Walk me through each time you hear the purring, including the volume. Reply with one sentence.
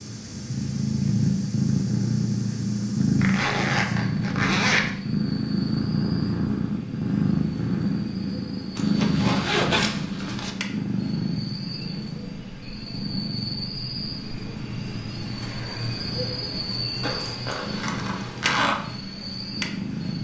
The purring can be heard from 0.0 to 20.1 s, getting quieter.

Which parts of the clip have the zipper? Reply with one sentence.
You can hear the zipper from 3.2 to 4.9 s, from 8.8 to 10.5 s and from 17.0 to 18.8 s.